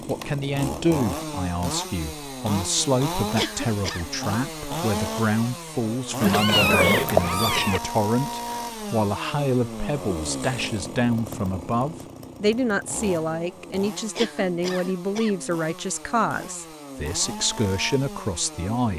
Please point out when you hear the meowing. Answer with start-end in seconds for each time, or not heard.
6.2-7.8.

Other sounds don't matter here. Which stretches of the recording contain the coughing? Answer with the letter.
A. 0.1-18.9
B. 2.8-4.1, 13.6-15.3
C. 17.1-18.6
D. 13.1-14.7
B.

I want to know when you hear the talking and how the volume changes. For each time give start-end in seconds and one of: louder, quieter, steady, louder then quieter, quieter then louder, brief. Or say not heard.
0.1-18.9 steady.